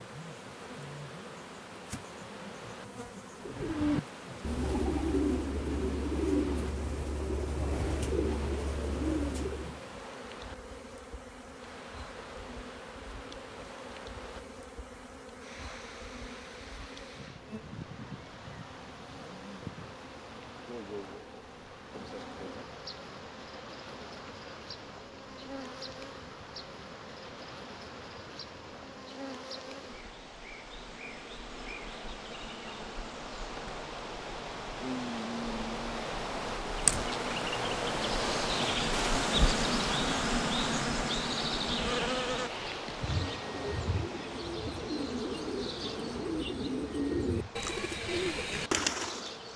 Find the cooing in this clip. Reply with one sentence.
The cooing can be heard from 3.4 to 9.8 s and from 43.0 to 49.4 s.